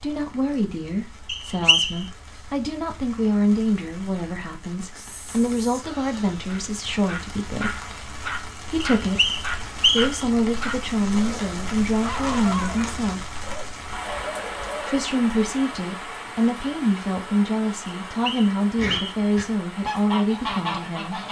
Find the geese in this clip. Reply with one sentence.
The geese can be heard from 18.8 to 21.2 s.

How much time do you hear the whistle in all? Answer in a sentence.
The whistle can be heard for 4 seconds in total.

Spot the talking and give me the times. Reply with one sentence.
The talking can be heard from 0.0 to 7.8 s, from 8.7 to 13.3 s and from 14.8 to 21.2 s.